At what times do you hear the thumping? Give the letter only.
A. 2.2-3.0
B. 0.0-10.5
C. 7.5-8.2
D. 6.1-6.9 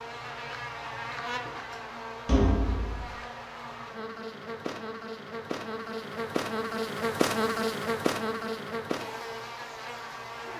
A.